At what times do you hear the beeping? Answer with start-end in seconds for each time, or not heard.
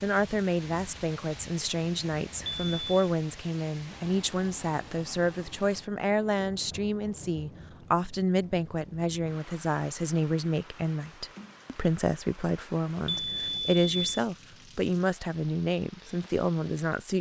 2.4-3.1, 13.1-14.2.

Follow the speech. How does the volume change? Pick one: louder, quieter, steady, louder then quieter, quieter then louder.
steady.